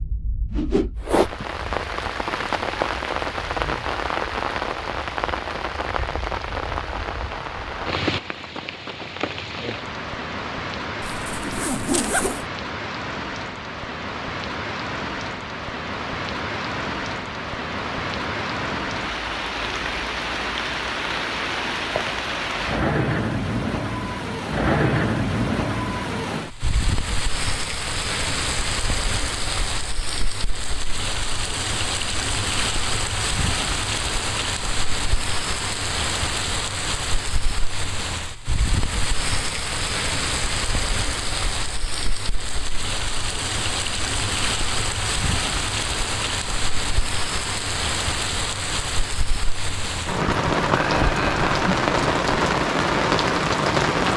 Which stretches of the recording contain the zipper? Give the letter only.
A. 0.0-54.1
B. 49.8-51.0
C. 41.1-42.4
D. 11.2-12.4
D.